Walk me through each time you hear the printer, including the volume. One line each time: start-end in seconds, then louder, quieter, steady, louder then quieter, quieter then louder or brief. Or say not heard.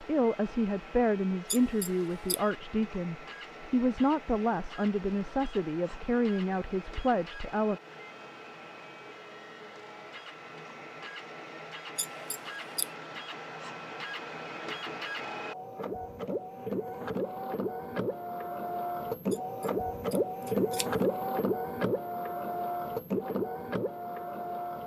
0.0-24.8 louder.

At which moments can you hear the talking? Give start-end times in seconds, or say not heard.
0.0-7.8.